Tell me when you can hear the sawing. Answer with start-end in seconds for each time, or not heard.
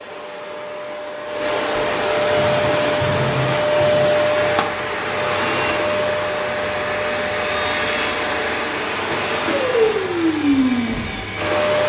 2.2-11.6.